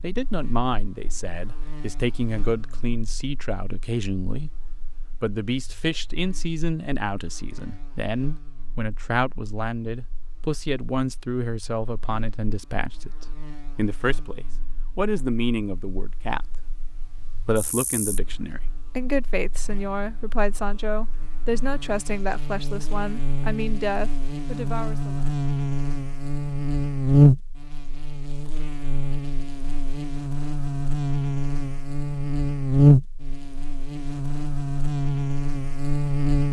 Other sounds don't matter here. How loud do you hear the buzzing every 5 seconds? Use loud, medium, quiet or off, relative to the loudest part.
quiet, quiet, quiet, quiet, quiet, loud, loud, loud.